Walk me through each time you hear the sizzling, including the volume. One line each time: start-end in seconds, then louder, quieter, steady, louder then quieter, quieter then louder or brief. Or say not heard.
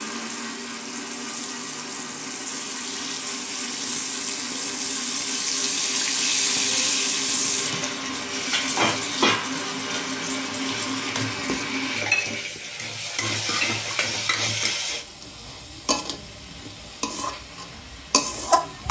0.0-18.8 louder then quieter.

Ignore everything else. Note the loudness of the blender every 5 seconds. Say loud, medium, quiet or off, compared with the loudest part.
medium, loud, loud, off.